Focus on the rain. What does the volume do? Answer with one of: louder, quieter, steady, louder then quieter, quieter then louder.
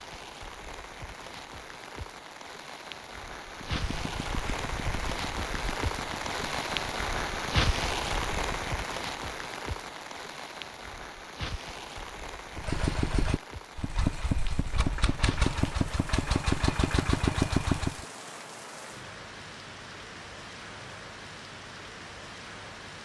louder then quieter.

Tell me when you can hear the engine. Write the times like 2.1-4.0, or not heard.
3.5-8.8, 12.5-18.1.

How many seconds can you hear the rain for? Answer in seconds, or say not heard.
23 s.